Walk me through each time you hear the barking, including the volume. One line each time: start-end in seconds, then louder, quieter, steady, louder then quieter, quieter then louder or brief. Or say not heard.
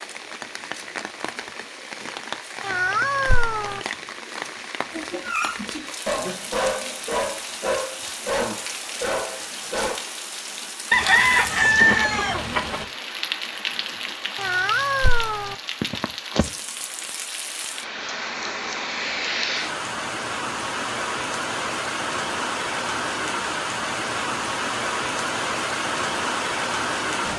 4.9-10.0 steady.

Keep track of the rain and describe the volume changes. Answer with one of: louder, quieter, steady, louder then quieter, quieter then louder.
louder.